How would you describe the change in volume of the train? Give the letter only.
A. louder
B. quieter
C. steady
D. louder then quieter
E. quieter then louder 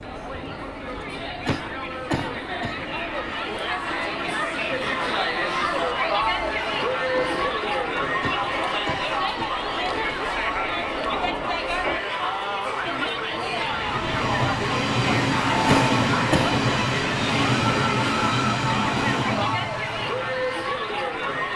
A.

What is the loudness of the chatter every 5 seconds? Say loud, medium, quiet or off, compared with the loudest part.
medium, loud, loud, loud, loud.